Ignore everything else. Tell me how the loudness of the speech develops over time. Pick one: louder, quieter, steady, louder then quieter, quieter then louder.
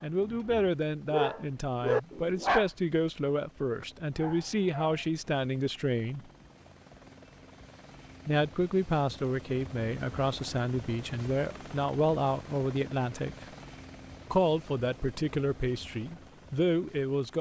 steady.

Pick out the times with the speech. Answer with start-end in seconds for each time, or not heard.
0.0-6.2, 8.2-13.4, 14.3-17.3.